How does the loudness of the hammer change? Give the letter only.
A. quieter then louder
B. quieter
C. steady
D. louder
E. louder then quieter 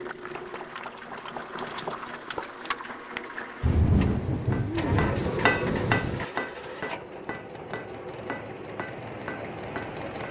B.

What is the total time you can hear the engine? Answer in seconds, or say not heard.
10 s.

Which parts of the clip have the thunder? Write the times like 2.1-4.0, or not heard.
3.6-6.2.